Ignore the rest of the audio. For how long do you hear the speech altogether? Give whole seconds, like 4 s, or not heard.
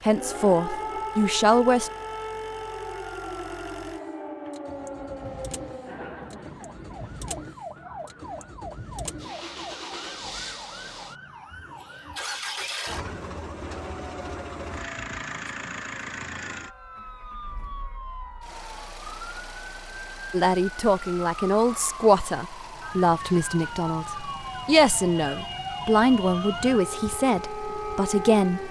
10 s.